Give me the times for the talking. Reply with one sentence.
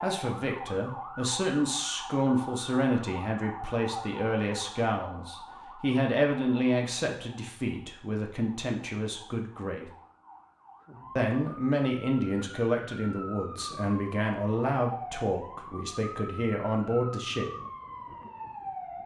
You can hear the talking from 0.0 to 9.9 s and from 11.2 to 17.5 s.